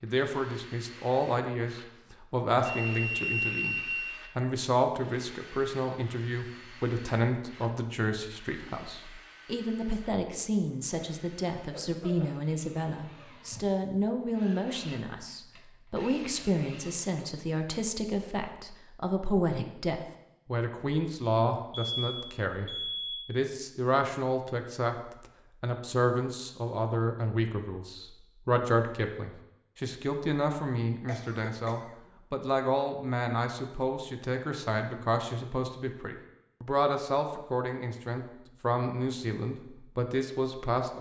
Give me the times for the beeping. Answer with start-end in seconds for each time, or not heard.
2.6-4.2, 21.7-23.2.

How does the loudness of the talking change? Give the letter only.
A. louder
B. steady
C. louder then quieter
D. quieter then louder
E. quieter
B.